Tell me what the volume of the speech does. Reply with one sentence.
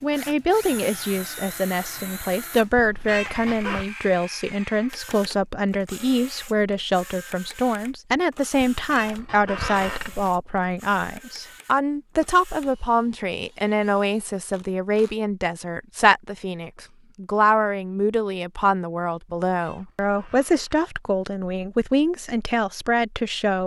The volume of the speech stays about the same.